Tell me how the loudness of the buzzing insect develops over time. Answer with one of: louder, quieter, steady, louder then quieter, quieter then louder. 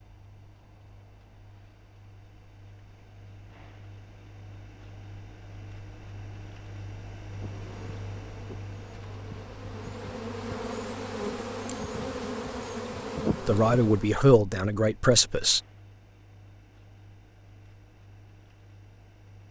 louder.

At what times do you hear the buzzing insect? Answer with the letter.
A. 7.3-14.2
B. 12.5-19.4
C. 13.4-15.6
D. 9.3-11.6
A.